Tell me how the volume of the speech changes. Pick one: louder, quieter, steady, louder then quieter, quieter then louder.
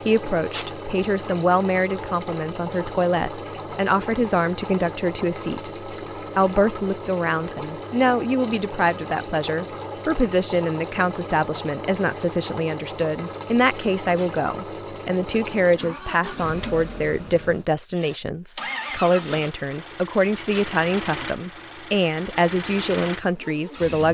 steady.